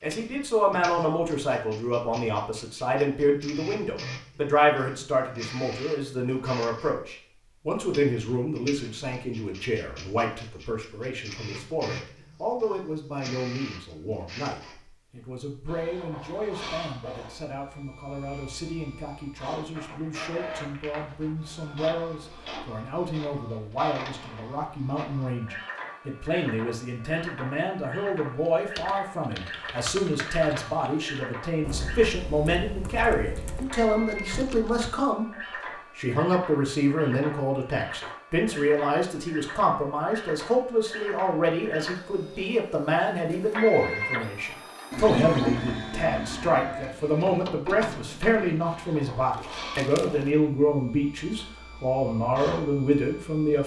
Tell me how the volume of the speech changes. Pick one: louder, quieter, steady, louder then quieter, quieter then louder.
quieter then louder.